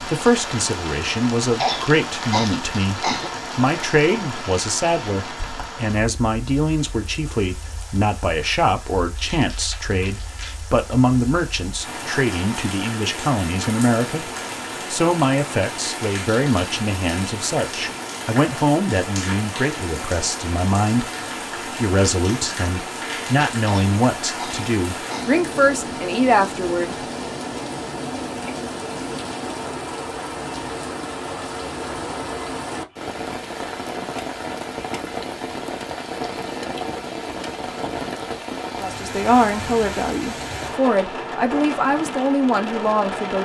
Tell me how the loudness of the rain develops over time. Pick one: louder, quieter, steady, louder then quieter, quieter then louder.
steady.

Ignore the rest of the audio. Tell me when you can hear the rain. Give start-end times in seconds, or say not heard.
0.0-43.4.